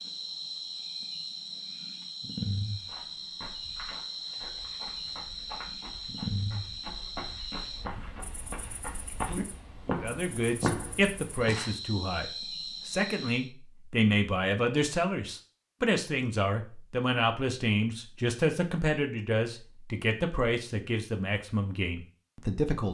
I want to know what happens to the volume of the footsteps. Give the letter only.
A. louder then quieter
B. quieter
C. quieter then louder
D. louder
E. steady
D.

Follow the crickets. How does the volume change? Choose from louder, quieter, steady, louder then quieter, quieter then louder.
quieter then louder.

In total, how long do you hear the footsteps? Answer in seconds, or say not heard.
9 s.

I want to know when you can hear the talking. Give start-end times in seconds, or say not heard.
9.8-22.8.